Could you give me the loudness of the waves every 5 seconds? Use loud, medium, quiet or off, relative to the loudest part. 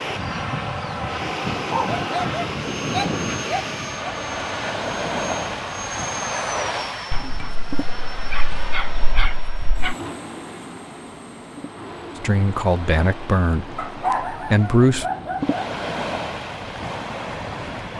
loud, loud, medium, loud.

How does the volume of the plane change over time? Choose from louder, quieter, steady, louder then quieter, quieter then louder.
quieter.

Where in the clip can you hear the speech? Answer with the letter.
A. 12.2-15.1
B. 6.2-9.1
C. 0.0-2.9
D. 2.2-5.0
A.